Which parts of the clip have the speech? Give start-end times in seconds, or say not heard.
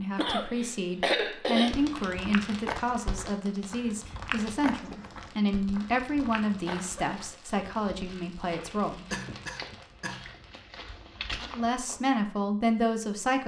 0.0-9.1, 11.4-13.4.